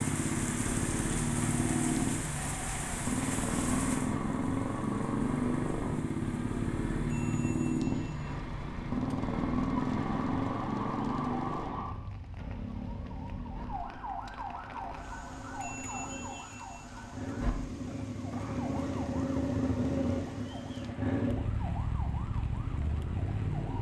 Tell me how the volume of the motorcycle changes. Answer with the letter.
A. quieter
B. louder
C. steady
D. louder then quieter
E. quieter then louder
E.